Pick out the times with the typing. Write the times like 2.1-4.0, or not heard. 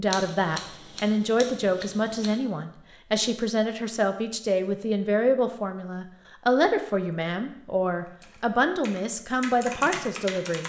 8.1-10.6.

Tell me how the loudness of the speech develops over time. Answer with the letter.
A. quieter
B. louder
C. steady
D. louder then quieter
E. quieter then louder
C.